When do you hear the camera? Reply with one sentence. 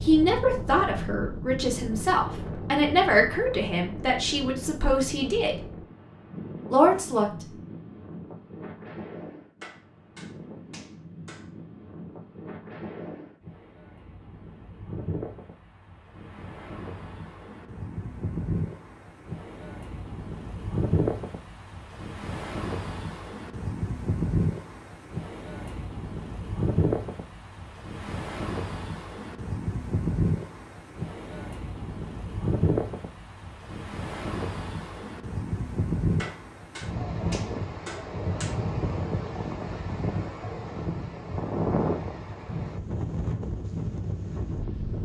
You can't hear the camera here.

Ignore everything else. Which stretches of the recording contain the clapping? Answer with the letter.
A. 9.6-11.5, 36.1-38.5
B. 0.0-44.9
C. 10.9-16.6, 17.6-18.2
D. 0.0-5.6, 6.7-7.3
A.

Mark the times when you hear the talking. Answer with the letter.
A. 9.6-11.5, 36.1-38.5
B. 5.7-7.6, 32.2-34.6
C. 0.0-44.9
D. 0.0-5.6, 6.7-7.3
D.